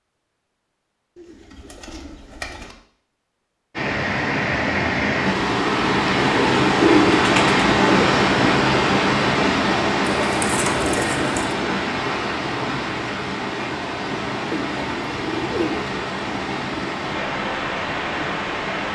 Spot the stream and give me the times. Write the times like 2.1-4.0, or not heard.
3.7-18.9.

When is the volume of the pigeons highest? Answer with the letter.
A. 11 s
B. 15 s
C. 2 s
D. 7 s
D.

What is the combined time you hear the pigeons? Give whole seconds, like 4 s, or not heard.
6 s.